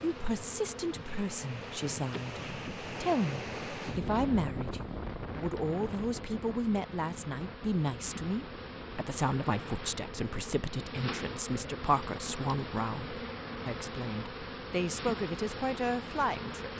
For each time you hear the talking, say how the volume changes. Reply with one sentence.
The talking can be heard from 0.0 to 16.7 s, at a steady volume.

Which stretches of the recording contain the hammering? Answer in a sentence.
You can't hear the hammering here.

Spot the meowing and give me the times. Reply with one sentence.
You can't hear the meowing here.